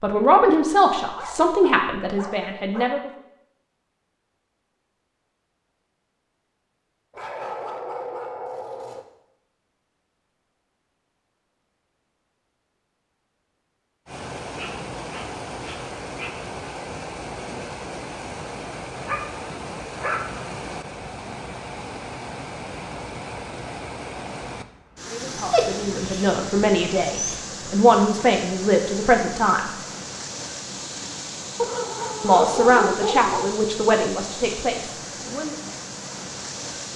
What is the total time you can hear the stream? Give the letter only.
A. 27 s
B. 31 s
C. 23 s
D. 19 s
C.